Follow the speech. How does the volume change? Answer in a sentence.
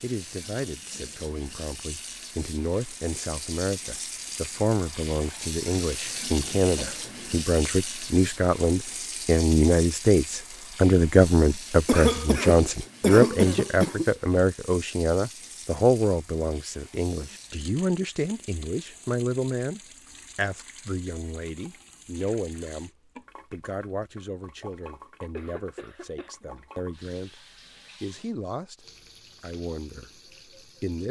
The loudness of the speech goes up, then down.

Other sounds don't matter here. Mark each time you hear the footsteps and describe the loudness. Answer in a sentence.
You can't hear the footsteps here.